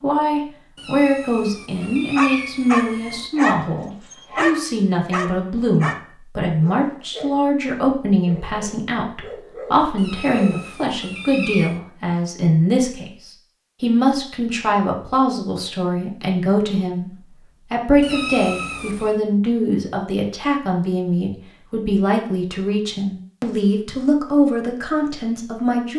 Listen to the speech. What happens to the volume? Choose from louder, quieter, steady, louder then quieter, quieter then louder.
steady.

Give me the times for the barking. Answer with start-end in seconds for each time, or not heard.
2.1-10.7.